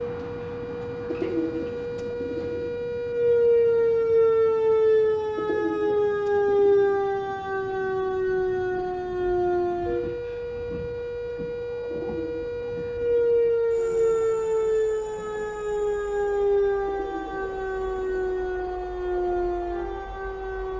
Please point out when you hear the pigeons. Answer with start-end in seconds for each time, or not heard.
1.1-2.7, 5.3-7.0, 11.8-13.5, 16.9-18.4.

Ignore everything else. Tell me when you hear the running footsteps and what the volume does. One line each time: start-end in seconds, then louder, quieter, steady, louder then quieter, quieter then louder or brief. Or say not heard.
not heard.